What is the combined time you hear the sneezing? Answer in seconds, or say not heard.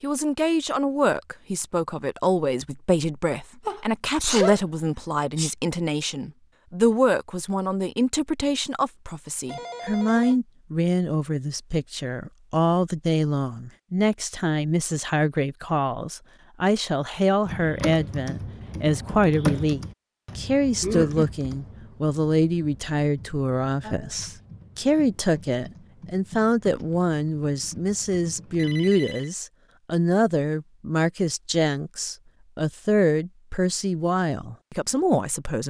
3 s.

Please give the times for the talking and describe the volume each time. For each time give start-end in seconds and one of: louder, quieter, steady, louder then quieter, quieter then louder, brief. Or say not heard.
0.0-35.6 steady.